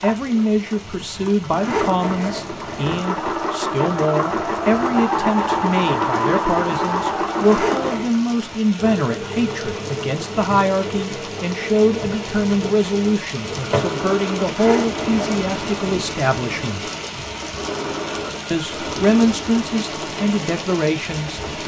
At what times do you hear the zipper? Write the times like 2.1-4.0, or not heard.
1.5-3.0, 7.3-8.1, 14.4-16.0.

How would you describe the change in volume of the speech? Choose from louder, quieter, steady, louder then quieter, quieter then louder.
steady.